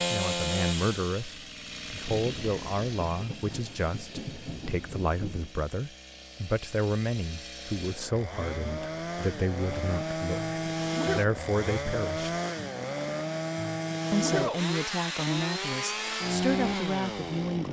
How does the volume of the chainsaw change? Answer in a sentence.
The volume of the chainsaw goes down, then up.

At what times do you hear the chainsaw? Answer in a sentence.
The chainsaw can be heard from 0.0 to 17.6 s.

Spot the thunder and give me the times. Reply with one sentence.
The thunder can be heard from 2.0 to 5.5 s.